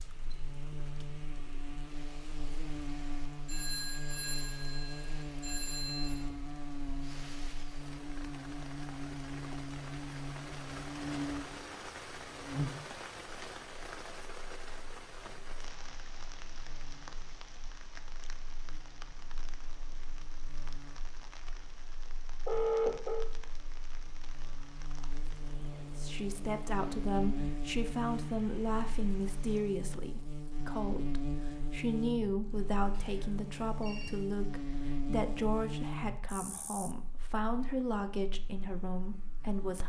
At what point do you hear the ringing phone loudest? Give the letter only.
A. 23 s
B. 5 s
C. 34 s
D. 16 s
A.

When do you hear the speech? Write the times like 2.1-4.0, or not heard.
25.9-39.8.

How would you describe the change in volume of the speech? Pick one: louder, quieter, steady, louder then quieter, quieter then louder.
steady.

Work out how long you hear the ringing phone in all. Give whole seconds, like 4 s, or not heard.
5 s.